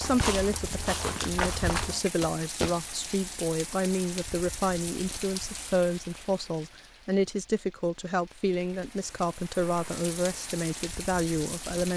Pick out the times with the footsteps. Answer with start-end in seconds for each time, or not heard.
0.0-2.8.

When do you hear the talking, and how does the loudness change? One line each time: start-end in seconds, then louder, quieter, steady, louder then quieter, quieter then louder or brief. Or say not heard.
0.0-11.9 steady.